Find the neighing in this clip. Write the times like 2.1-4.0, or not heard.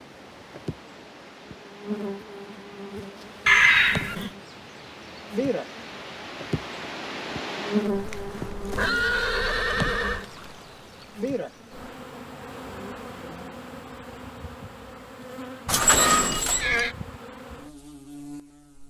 3.5-4.3, 8.4-10.2, 15.7-16.9.